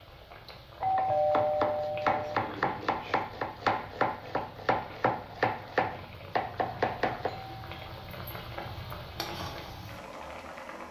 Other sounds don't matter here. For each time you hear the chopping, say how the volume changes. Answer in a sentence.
The chopping can be heard from 0.8 to 7.3 s, at a steady volume.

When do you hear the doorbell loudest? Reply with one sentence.
The loudest moment of the doorbell is at 1 second.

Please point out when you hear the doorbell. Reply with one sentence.
You can hear the doorbell from 0.8 to 2.4 s and from 7.2 to 8.0 s.